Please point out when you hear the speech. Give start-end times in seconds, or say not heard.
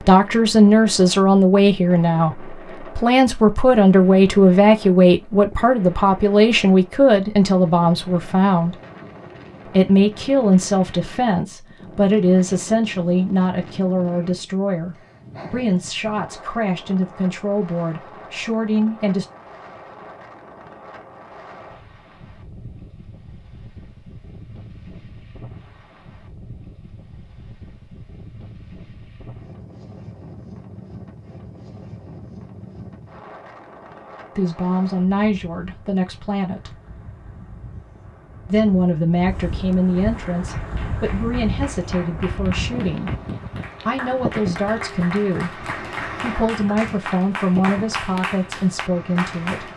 0.0-8.8, 9.7-19.2, 34.4-36.8, 38.5-43.1, 43.9-49.7.